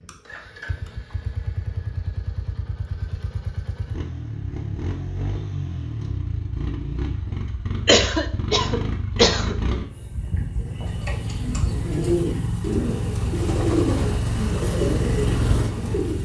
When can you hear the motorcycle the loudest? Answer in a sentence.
The loudest moment of the motorcycle is at 15 seconds.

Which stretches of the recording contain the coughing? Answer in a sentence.
You can hear the coughing from 7.8 to 9.6 s.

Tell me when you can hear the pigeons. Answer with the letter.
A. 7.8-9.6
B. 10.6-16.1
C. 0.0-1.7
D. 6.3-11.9
B.